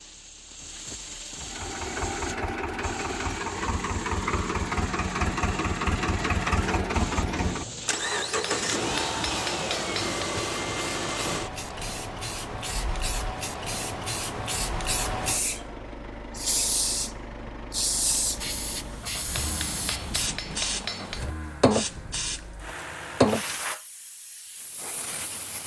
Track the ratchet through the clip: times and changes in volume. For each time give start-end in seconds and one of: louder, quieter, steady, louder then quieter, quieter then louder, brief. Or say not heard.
not heard.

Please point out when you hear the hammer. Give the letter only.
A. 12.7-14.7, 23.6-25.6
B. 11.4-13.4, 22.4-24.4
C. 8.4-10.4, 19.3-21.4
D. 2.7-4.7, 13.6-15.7
C.